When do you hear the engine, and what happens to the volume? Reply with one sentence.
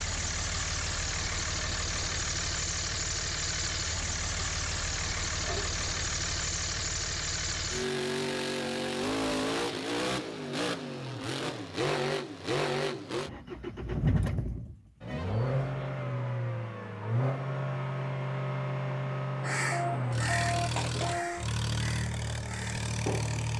You can hear the engine from 0.0 to 23.5 s, at a steady volume.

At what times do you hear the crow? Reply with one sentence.
The crow can be heard from 19.4 to 23.5 s.